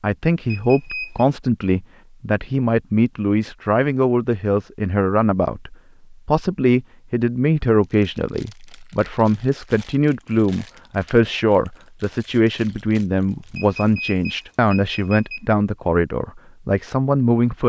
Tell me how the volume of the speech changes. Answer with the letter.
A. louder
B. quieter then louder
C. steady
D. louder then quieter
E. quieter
C.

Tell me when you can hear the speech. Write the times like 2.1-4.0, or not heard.
0.0-17.6.